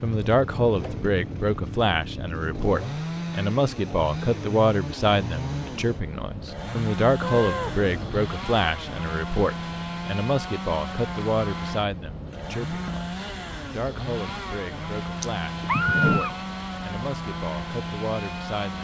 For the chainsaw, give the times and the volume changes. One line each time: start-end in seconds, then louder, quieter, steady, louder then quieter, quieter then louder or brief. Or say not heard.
0.0-18.7 steady.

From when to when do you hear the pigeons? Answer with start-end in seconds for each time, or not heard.
not heard.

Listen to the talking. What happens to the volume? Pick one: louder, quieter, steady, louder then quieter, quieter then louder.
quieter.